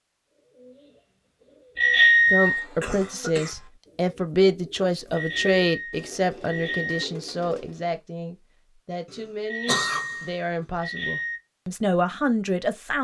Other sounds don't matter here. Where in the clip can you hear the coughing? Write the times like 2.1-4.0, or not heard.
2.4-3.7, 9.1-10.7.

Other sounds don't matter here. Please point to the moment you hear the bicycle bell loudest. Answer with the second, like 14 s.
2 s.